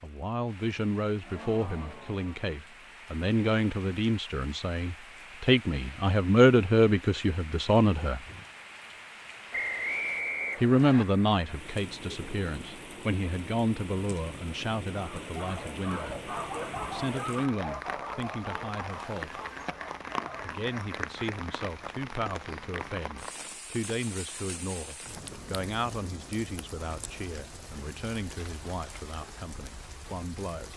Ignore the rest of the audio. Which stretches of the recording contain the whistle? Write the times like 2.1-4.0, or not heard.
9.5-11.1.